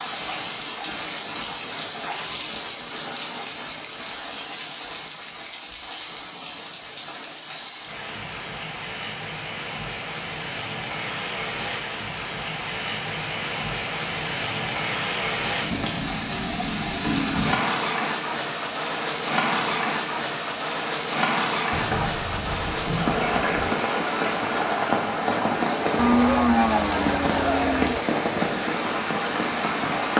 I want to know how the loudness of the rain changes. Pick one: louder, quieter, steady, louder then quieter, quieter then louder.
louder.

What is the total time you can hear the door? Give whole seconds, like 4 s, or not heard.
2 s.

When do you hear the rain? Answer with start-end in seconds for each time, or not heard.
0.0-30.1.